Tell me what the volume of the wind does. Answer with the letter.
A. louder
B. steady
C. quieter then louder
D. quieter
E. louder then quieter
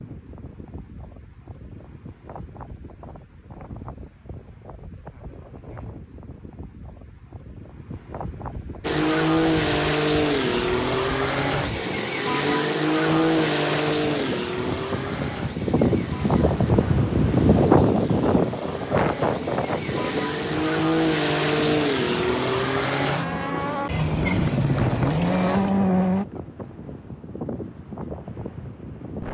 E.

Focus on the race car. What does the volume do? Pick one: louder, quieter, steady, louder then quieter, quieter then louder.
quieter then louder.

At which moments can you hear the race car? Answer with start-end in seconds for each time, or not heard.
8.8-26.2.